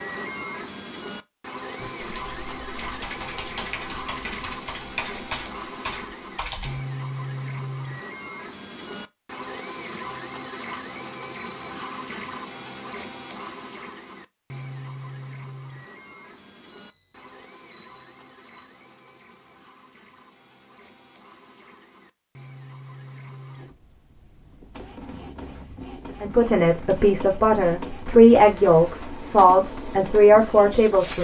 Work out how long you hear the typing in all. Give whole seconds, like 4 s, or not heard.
5 s.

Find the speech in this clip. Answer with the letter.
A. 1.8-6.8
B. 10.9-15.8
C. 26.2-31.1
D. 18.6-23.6
C.